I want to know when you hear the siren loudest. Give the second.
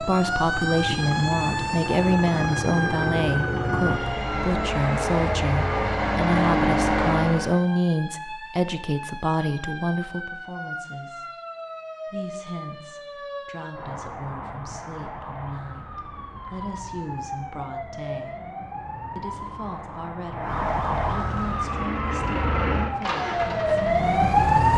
24 s.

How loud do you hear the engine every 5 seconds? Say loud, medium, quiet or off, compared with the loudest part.
medium, loud, off, off, medium.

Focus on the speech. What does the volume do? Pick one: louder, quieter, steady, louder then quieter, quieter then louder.
quieter.